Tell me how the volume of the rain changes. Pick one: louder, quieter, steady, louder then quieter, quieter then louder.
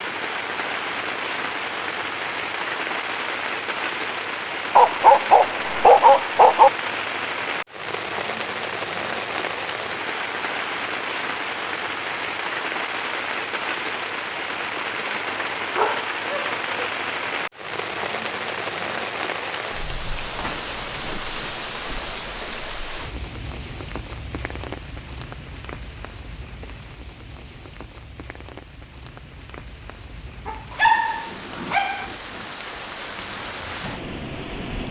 quieter.